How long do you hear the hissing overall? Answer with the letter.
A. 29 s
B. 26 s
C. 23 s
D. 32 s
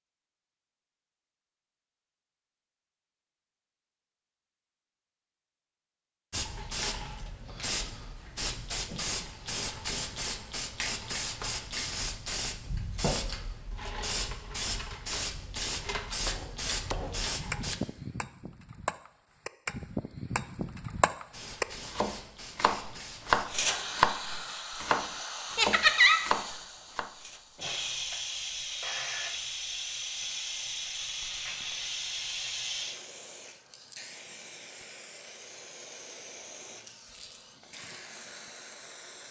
A.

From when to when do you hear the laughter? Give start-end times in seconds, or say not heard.
25.6-26.2.